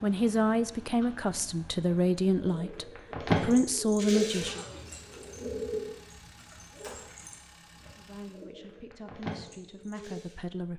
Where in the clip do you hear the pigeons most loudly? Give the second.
4 s.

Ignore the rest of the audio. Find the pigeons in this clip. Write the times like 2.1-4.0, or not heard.
0.8-10.4.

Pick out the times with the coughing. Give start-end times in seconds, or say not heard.
not heard.